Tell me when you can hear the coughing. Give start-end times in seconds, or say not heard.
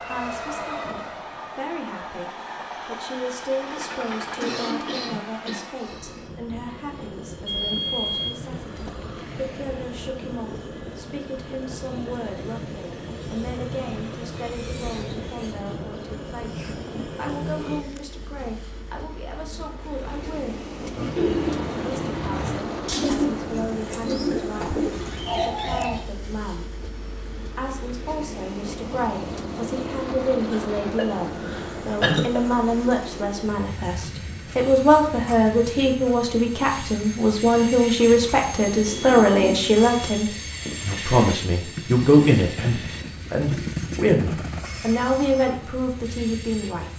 3.7-6.3, 30.5-32.4.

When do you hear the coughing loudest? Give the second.
32 s.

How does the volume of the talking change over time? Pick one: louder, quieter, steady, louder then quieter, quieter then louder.
louder.